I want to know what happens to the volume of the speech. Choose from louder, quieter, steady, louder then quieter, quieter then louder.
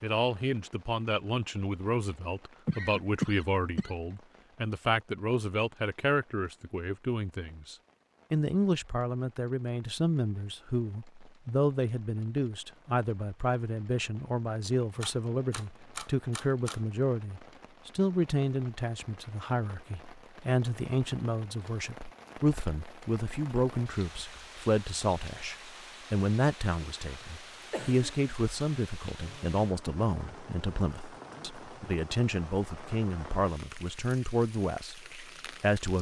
steady.